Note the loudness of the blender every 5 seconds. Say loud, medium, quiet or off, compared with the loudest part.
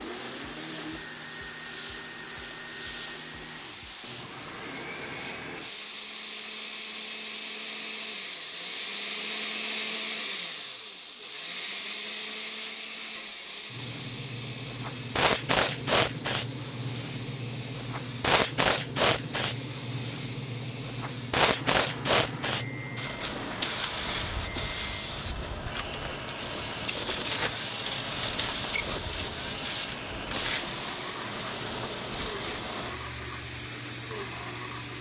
medium, loud, loud, medium, medium, medium, medium.